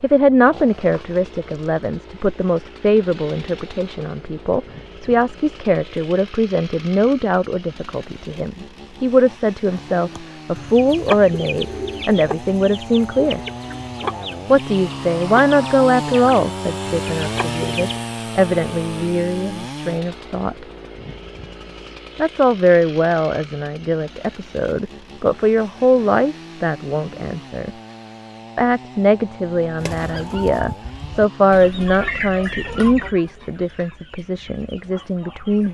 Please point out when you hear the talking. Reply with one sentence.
You can hear the talking from 0.0 to 13.4 s, from 14.5 to 20.6 s, from 22.1 to 27.7 s and from 28.6 to 35.6 s.